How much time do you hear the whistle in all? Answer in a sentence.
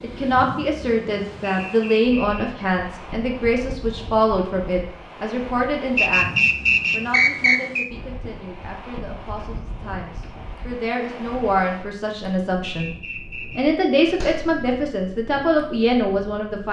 The whistle can be heard for 4 seconds in total.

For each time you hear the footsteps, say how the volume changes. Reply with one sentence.
You can't hear the footsteps here.